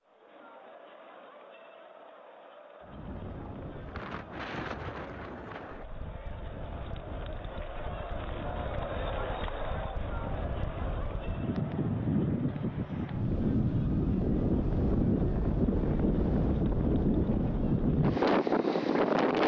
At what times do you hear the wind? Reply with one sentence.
You can hear the wind from 2.8 to 19.4 s.